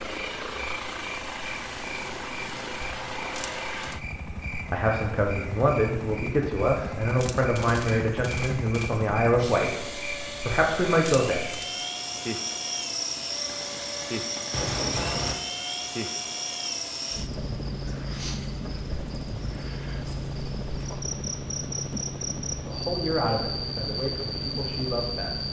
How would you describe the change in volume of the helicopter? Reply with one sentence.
The loudness of the helicopter stays about the same.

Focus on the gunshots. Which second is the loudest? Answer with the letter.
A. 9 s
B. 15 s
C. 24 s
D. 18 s
B.